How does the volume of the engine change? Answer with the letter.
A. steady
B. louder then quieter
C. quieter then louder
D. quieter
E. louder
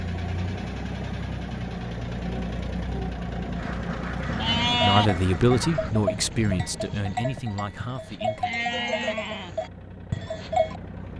D.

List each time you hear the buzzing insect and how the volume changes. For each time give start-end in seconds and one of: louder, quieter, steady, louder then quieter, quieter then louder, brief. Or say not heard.
not heard.